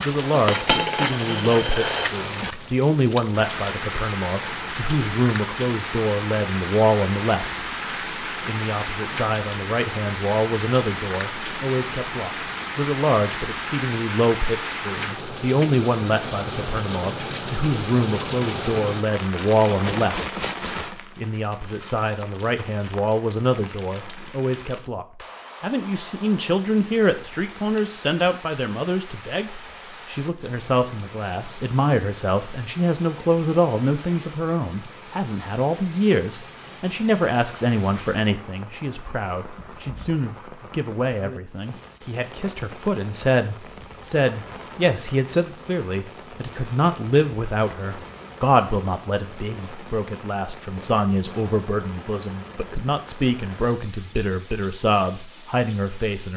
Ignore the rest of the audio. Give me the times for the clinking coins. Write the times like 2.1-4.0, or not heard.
0.5-2.1.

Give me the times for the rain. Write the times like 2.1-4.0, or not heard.
0.0-56.3.